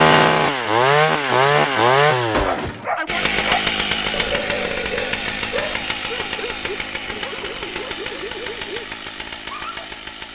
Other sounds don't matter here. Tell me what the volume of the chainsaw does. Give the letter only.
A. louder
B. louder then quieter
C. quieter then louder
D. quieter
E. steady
D.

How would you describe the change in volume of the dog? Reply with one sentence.
The loudness of the dog goes down.